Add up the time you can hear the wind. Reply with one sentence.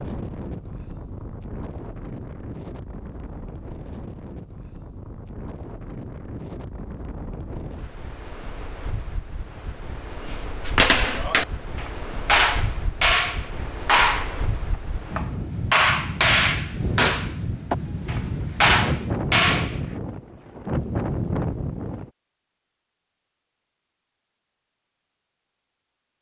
The wind can be heard for 22 seconds in total.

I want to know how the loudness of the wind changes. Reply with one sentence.
The loudness of the wind goes up.